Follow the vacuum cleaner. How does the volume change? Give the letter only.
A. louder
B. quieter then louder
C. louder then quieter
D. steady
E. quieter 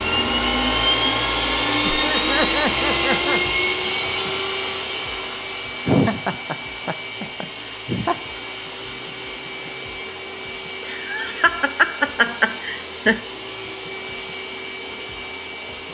E.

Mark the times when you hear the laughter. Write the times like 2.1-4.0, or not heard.
1.8-3.4, 5.8-8.2, 10.8-13.2.